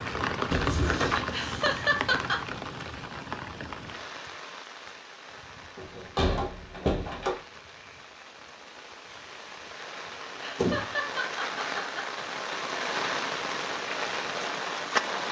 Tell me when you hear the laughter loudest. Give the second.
2 s.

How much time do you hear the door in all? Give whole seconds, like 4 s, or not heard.
3 s.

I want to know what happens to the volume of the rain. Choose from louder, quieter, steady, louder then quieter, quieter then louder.
quieter then louder.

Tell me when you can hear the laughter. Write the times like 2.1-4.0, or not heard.
1.3-2.4, 10.4-12.2.